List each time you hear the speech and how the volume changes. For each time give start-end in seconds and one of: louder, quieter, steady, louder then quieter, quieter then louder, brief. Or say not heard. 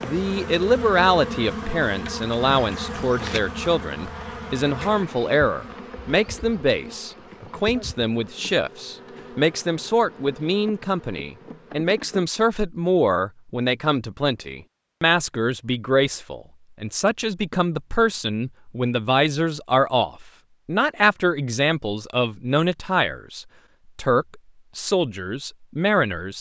0.0-26.3 steady.